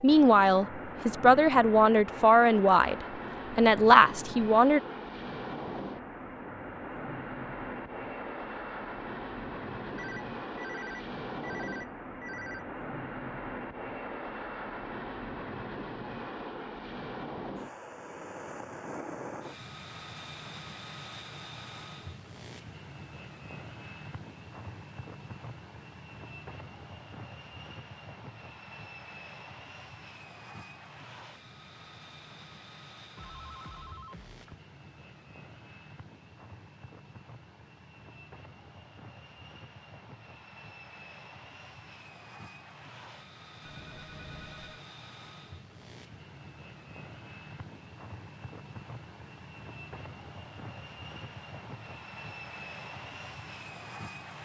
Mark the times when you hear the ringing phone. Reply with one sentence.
The ringing phone can be heard from 9.9 to 12.7 s, from 33.1 to 34.5 s and from 43.6 to 44.8 s.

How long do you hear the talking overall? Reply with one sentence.
You can hear the talking for 5 seconds altogether.